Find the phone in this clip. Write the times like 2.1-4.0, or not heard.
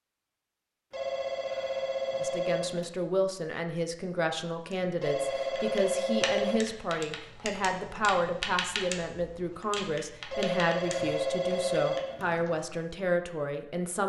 0.9-2.9, 5.0-6.6, 10.3-12.3.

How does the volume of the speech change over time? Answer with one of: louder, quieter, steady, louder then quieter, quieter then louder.
steady.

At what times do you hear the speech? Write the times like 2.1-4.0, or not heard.
2.2-14.0.